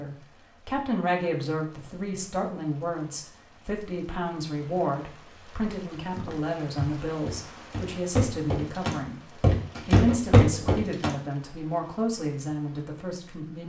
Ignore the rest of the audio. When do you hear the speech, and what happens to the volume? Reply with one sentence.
You can hear the speech from 0.0 to 13.6 s, at a steady volume.